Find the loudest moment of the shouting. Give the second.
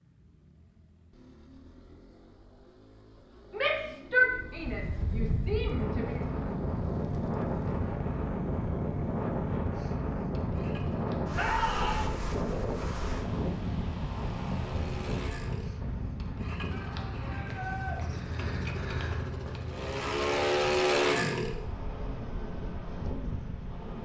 4 s.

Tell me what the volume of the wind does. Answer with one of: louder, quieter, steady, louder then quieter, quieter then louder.
quieter.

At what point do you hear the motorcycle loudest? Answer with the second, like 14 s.
21 s.